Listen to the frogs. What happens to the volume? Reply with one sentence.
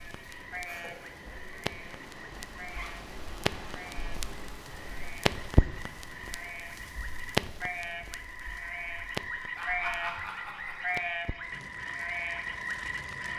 The loudness of the frogs goes up.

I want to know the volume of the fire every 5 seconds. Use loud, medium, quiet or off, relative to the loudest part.
medium, loud, quiet.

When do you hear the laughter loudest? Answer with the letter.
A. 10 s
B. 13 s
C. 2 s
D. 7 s
A.